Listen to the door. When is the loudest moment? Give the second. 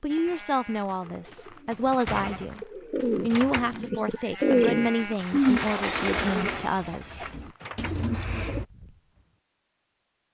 6 s.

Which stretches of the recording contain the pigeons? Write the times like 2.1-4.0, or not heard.
1.4-8.7.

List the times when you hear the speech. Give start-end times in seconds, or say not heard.
0.0-7.2.